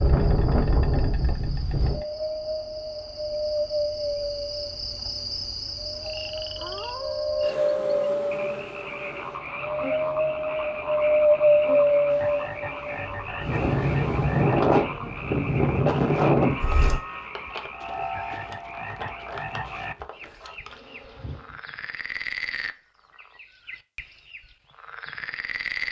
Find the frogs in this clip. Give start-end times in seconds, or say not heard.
6.0-25.8.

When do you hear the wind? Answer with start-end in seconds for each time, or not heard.
0.0-17.0.